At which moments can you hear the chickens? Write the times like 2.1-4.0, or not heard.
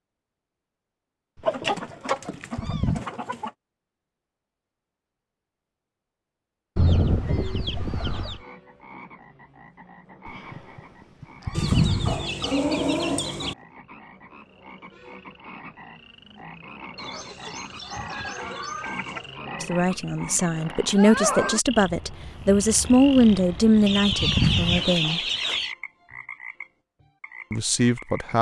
1.4-3.5, 6.8-8.4, 11.6-13.6, 16.9-19.2, 23.9-25.8.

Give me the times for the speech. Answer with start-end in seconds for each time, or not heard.
19.6-25.2, 27.5-28.3.